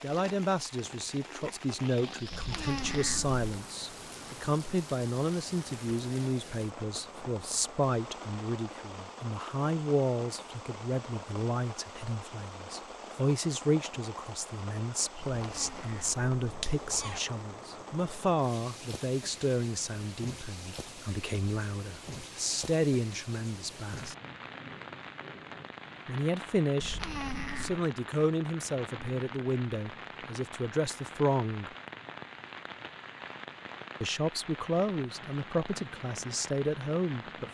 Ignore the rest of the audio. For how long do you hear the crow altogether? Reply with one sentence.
You can't hear the crow here.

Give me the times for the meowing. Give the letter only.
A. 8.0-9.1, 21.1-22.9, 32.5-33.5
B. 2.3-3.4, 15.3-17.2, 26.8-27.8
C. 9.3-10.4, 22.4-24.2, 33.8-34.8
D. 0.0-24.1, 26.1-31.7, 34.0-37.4
B.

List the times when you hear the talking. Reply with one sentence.
You can hear the talking from 0.0 to 24.1 s, from 26.1 to 31.7 s and from 34.0 to 37.4 s.